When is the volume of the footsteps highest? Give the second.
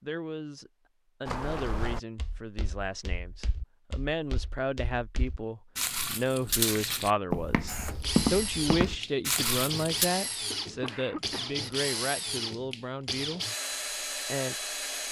8 s.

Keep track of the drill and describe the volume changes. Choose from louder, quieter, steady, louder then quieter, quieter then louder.
steady.